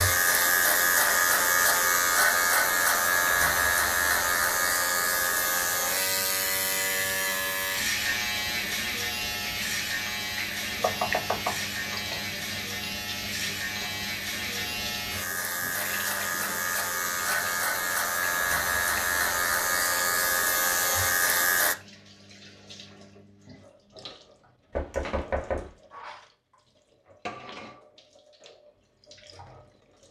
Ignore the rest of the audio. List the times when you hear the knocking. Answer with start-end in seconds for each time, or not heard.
10.8-12.1, 24.7-25.7.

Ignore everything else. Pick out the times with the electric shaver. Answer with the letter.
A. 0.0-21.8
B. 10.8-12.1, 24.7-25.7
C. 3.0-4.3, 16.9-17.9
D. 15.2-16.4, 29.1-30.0
A.